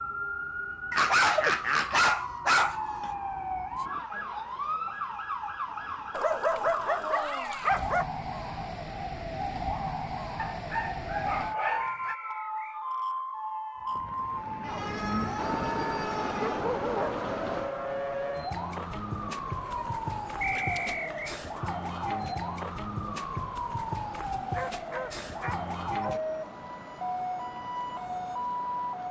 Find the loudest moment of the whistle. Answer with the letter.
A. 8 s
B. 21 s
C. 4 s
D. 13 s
B.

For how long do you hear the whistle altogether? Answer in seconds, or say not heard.
2 s.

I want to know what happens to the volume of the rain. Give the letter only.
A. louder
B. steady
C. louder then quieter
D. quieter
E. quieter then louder
D.